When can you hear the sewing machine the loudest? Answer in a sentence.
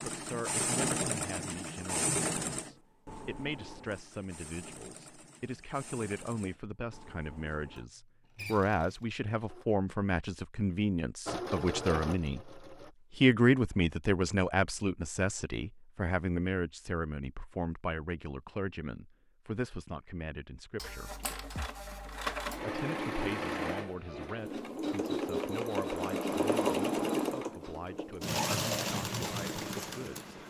The volume of the sewing machine peaks at 27 seconds.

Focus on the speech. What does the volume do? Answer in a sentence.
The volume of the speech goes up, then down.